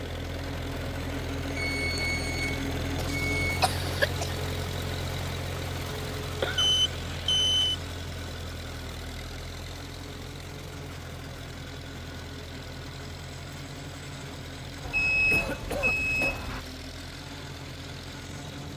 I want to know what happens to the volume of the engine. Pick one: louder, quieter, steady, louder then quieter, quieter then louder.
quieter.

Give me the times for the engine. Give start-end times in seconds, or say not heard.
0.0-18.7.